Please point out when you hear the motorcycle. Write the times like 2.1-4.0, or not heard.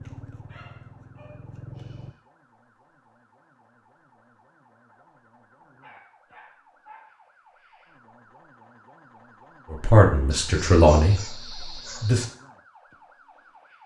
0.0-2.1.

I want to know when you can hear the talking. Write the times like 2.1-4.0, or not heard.
9.7-12.2.